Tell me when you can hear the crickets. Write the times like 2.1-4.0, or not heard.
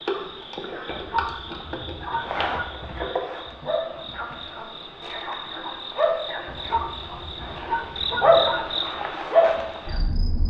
0.0-10.4.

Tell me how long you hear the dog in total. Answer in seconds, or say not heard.
4 s.